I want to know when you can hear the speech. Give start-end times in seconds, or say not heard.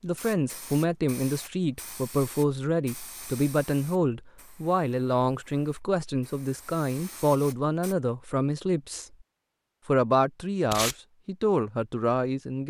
0.0-9.1, 9.8-12.6.